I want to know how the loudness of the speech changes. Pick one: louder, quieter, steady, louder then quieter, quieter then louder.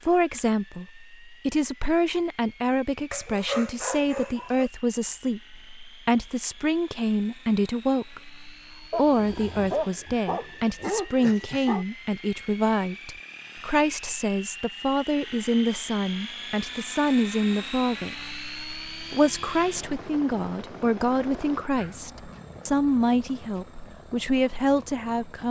steady.